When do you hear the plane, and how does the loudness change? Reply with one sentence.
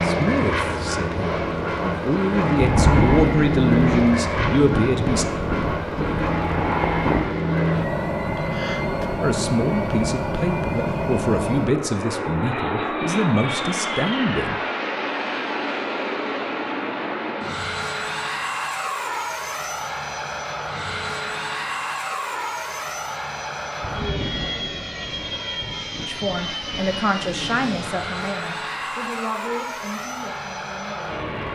You can hear the plane from 0.0 to 31.5 s, getting quieter.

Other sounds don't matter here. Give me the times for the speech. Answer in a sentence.
You can hear the speech from 0.0 to 5.2 s, from 9.2 to 14.6 s and from 26.1 to 31.2 s.